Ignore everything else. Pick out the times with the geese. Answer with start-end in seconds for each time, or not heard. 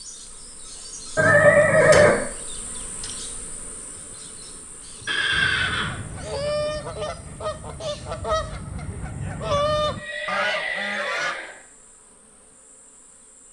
5.3-11.4.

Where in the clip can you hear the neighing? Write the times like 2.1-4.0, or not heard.
1.1-2.1, 5.0-6.0, 9.9-11.6.